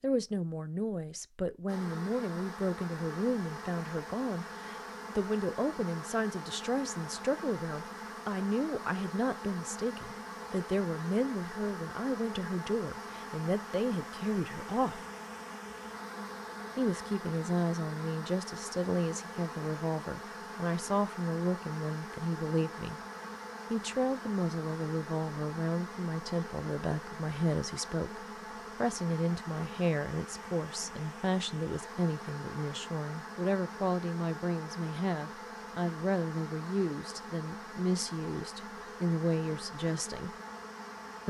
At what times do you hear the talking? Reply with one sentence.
The talking can be heard from 0.0 to 15.0 s, from 16.8 to 23.0 s and from 23.7 to 40.3 s.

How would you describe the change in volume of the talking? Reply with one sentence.
The volume of the talking stays about the same.